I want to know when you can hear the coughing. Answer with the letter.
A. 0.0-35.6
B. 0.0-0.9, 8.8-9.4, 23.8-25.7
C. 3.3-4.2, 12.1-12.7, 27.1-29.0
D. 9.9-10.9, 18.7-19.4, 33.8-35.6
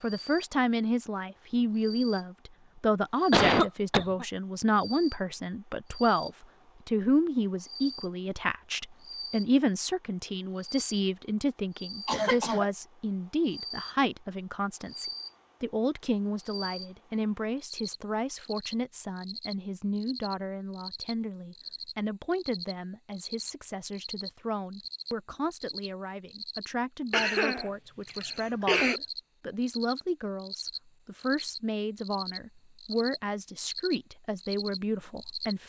C.